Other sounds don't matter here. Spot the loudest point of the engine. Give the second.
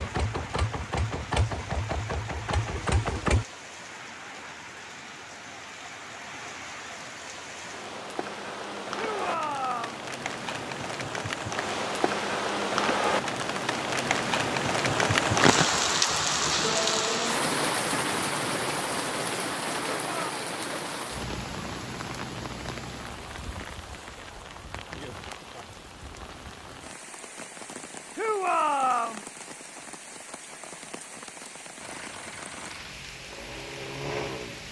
3 s.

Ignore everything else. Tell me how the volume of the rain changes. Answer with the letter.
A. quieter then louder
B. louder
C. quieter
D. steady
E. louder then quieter
E.